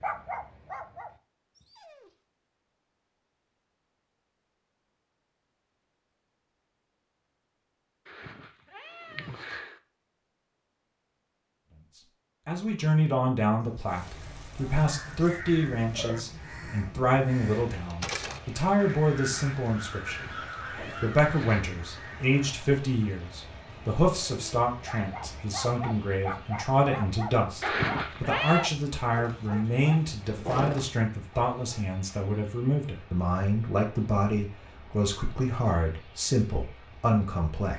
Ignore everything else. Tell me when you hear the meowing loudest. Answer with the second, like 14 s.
28 s.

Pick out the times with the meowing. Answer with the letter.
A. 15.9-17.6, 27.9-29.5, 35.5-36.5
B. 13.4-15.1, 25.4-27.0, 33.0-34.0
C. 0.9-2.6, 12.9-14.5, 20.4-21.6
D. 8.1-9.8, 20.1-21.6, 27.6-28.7
D.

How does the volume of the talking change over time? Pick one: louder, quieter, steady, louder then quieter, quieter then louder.
steady.